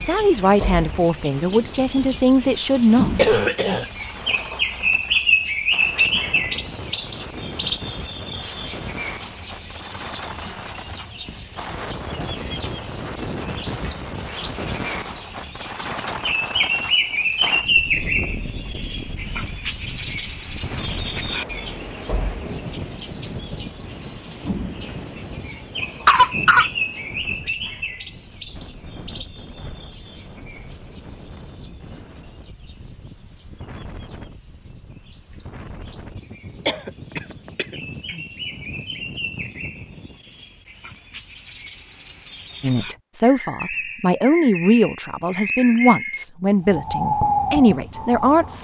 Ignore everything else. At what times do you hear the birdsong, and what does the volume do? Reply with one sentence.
The birdsong can be heard from 0.0 to 48.6 s, getting quieter then louder.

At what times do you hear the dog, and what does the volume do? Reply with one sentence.
You can't hear the dog here.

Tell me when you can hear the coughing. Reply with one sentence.
The coughing can be heard from 3.1 to 3.9 s, from 26.1 to 26.7 s and from 36.6 to 38.2 s.